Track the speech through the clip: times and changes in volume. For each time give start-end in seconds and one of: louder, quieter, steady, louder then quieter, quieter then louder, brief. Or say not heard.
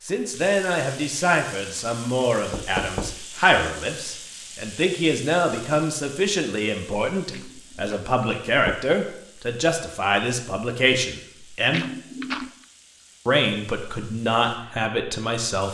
0.0-11.8 steady
13.2-15.6 brief.